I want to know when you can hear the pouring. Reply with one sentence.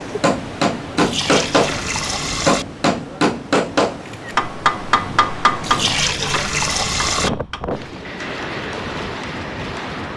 You can hear the pouring from 0.9 to 2.6 s and from 5.6 to 7.3 s.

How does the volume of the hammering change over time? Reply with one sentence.
The volume of the hammering goes down.